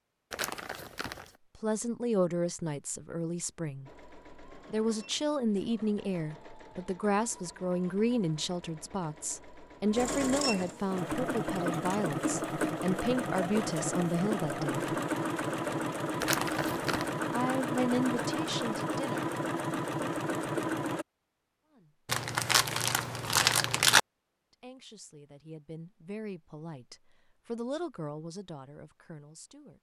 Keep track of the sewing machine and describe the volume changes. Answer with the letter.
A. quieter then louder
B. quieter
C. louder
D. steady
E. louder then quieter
C.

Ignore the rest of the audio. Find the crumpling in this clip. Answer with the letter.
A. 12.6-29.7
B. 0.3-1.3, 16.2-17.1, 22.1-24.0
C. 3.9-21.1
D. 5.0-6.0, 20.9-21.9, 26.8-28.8
B.